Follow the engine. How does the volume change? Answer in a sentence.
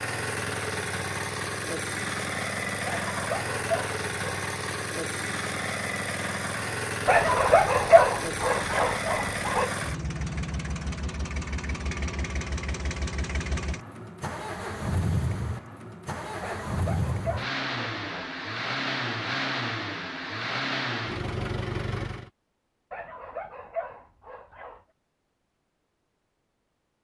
The volume of the engine stays about the same.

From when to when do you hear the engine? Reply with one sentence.
The engine can be heard from 0.0 to 22.3 s.